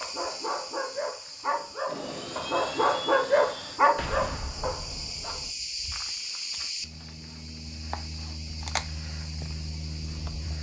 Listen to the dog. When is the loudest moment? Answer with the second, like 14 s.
3 s.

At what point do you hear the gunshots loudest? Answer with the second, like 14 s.
4 s.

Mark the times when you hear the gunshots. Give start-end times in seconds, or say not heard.
4.0-5.5.